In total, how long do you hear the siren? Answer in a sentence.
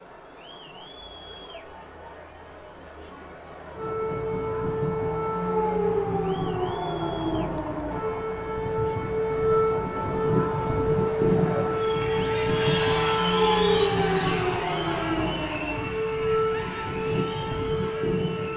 The siren can be heard for 15 seconds in total.